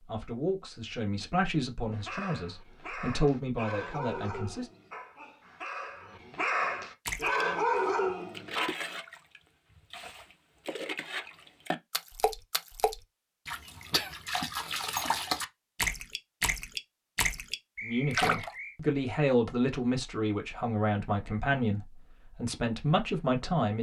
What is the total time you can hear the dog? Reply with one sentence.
The dog can be heard for 7 seconds in total.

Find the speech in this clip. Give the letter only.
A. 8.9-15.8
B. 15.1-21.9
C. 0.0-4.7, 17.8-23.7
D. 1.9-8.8
C.